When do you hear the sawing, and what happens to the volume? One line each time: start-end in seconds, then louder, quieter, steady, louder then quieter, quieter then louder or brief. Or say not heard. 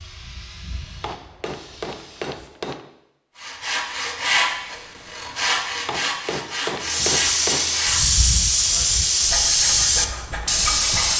3.4-11.1 quieter.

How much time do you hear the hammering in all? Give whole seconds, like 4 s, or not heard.
4 s.